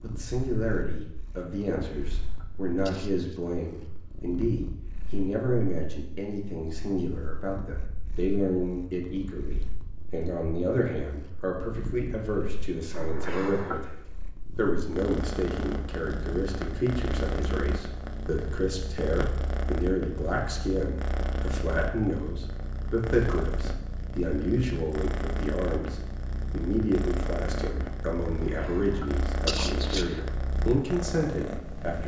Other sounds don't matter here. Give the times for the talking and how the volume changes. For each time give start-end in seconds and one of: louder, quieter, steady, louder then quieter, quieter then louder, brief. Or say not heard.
0.0-32.0 steady.